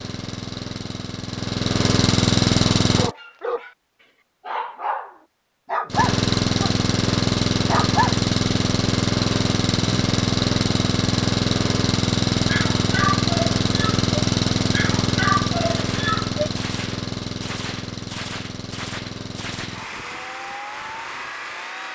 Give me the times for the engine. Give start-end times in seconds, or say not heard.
0.0-3.1, 5.8-21.9.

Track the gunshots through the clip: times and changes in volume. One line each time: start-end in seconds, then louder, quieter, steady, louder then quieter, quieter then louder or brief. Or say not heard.
15.7-19.8 steady.